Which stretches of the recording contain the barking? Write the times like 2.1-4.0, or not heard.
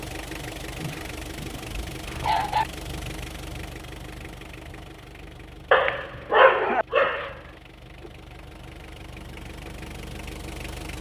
0.8-2.6, 5.7-7.3.